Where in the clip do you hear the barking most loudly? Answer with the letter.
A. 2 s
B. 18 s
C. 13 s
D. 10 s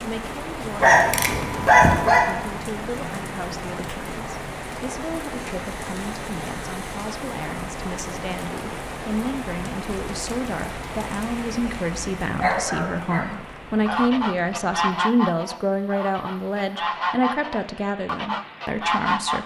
A.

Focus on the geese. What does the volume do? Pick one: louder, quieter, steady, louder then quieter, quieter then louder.
quieter then louder.